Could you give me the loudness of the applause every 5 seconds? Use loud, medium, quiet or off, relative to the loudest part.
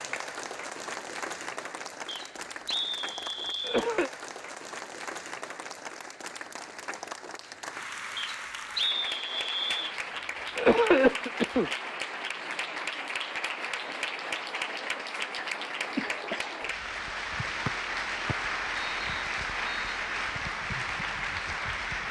medium, medium, loud, loud, loud.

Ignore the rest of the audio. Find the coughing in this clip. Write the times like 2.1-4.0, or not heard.
3.6-4.1, 10.6-11.7, 15.9-16.7.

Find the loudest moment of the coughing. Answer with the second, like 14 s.
11 s.